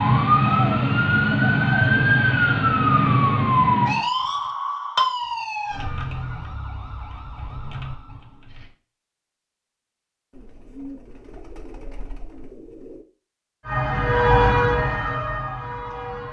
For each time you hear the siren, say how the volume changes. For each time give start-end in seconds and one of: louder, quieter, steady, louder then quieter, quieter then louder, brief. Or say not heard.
0.0-8.7 quieter
13.6-16.2 brief.